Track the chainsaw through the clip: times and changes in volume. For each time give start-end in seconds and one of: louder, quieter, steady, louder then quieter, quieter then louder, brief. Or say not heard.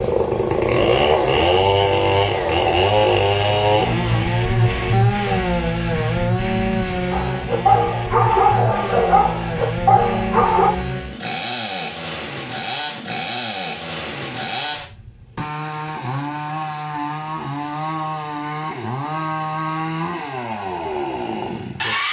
0.0-22.0 quieter.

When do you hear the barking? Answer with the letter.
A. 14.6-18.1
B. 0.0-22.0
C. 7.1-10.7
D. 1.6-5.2
C.